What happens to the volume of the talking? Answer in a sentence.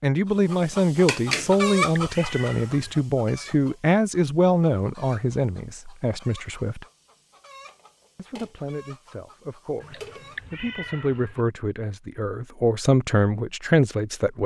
The loudness of the talking goes down, then up.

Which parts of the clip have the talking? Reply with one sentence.
You can hear the talking from 0.0 to 6.8 s and from 8.2 to 14.4 s.